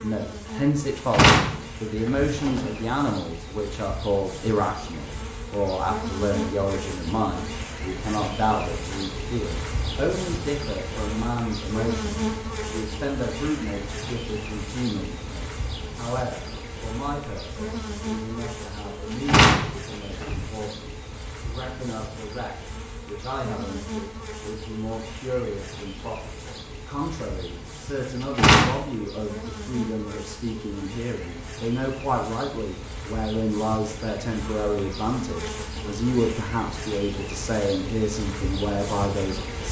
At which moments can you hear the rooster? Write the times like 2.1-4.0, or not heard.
not heard.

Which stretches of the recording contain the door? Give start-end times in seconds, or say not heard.
1.1-2.7, 19.1-20.4, 28.2-28.8.